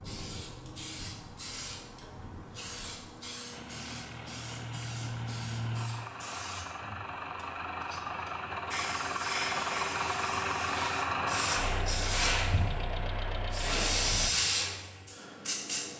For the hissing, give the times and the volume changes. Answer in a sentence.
The hissing can be heard from 0.0 to 15.9 s, getting louder.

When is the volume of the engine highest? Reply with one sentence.
The loudest moment of the engine is at 11 seconds.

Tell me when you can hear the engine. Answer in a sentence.
You can hear the engine from 3.5 to 14.3 s.